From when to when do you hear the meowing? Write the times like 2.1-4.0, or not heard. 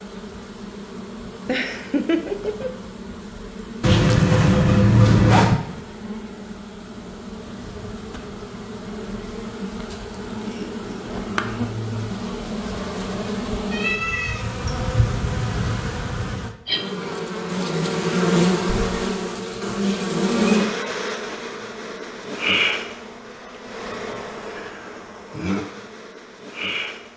3.8-5.6, 13.7-14.4, 18.6-20.6.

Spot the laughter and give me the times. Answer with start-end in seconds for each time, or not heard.
1.4-2.7.